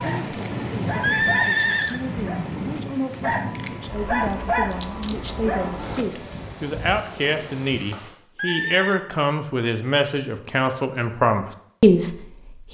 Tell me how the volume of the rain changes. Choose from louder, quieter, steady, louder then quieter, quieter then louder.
quieter.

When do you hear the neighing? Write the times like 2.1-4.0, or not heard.
1.0-2.0, 8.3-9.1.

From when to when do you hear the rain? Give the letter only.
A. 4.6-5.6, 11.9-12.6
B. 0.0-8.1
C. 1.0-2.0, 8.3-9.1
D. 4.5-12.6
B.